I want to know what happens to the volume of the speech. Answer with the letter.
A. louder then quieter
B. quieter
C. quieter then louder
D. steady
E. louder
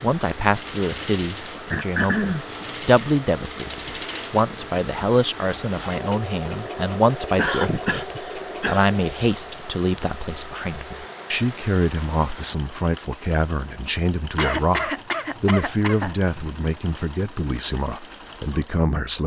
D.